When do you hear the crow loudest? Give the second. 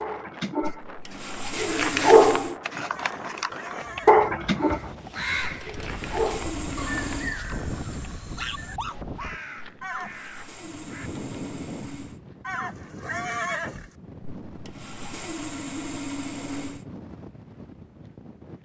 5 s.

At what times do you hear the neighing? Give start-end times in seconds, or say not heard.
2.9-4.2, 9.8-10.4, 12.4-13.9.